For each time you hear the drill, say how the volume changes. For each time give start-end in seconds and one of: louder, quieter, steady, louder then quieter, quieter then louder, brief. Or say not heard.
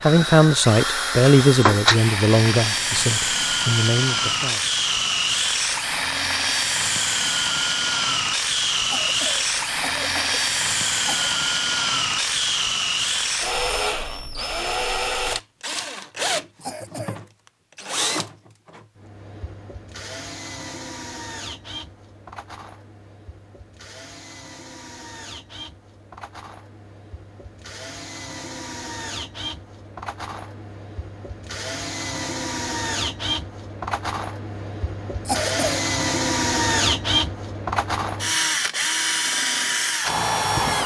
0.0-40.8 quieter then louder.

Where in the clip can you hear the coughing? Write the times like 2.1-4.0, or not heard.
8.8-11.3, 16.6-17.2, 35.2-35.8.